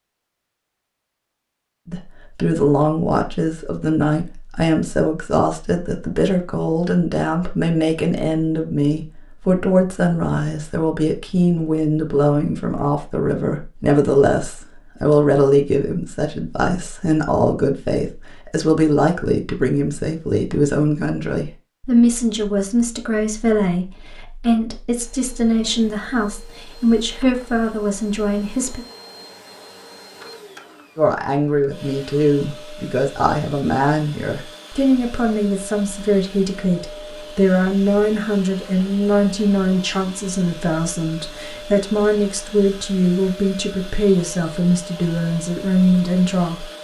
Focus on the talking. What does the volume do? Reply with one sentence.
The volume of the talking stays about the same.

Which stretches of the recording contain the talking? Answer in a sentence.
You can hear the talking from 1.9 to 28.9 s and from 30.9 to 46.6 s.